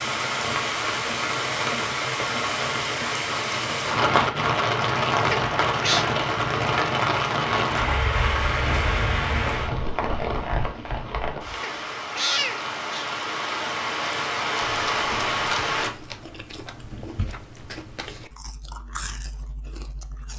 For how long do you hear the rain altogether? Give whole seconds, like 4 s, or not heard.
16 s.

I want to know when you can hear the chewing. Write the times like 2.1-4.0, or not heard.
14.6-20.3.